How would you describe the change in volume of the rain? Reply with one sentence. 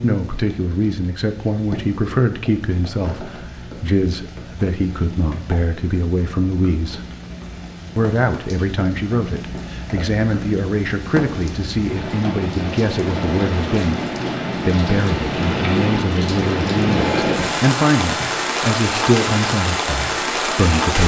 The volume of the rain goes up.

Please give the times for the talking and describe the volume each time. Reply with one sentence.
You can hear the talking from 0.0 to 7.0 s, at a steady volume; and from 8.0 to 21.0 s, at a steady volume.